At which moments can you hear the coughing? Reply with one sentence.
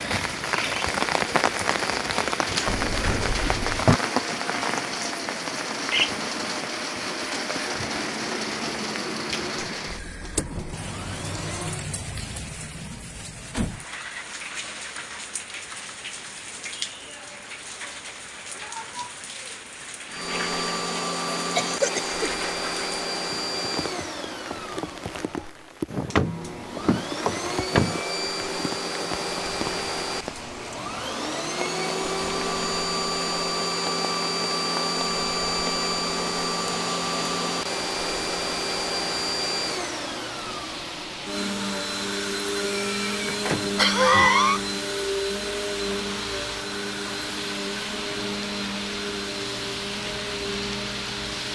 You can hear the coughing from 21.6 to 22.4 s and from 42.6 to 44.6 s.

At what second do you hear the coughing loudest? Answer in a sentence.
The loudest moment of the coughing is at 44 seconds.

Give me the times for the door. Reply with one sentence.
You can hear the door from 2.6 to 4.0 s, from 25.9 to 28.0 s and from 43.2 to 44.3 s.